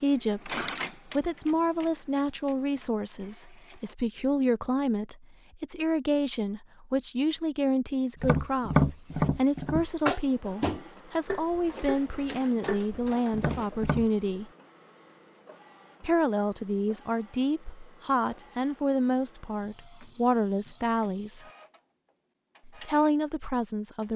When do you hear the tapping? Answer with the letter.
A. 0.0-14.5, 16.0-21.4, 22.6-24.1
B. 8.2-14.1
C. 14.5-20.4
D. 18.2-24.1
B.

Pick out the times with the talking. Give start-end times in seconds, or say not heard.
0.0-14.5, 16.0-21.4, 22.6-24.1.